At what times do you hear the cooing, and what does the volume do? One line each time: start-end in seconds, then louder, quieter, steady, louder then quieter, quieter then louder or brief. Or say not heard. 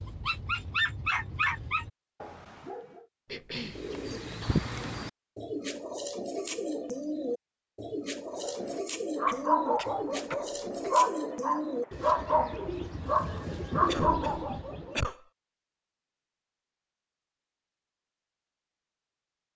3.6-15.1 steady.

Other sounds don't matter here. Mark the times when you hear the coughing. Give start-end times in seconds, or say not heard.
3.2-3.9, 9.2-11.0, 13.8-15.2.